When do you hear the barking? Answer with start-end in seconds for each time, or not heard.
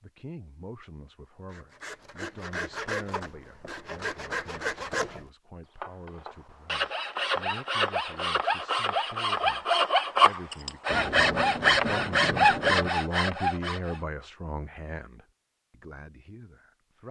not heard.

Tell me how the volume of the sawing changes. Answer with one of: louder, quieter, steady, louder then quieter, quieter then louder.
louder.